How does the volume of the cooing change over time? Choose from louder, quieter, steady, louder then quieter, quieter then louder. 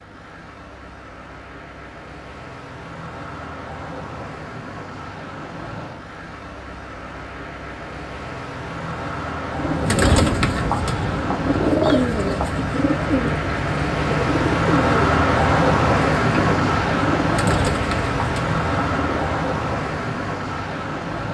quieter.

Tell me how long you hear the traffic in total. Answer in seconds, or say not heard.
21 s.